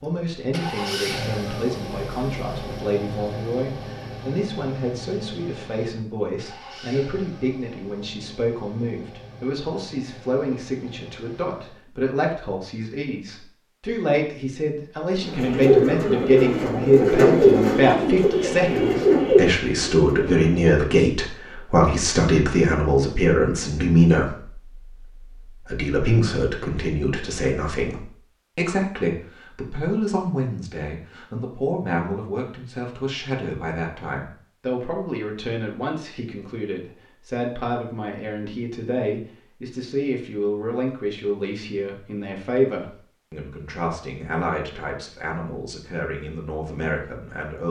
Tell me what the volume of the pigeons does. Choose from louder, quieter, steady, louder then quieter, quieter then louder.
steady.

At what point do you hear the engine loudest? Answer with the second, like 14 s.
1 s.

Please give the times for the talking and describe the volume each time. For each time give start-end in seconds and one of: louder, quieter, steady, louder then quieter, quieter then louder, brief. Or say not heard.
0.0-47.6 louder then quieter.